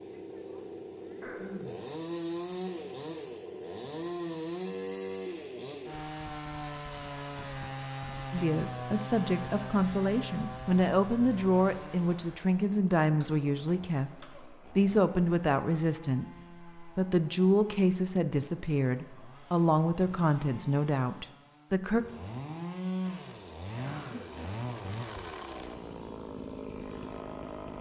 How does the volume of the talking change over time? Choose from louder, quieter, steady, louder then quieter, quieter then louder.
steady.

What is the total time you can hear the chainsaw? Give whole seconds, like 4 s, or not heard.
28 s.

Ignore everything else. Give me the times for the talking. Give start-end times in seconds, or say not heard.
8.3-22.1.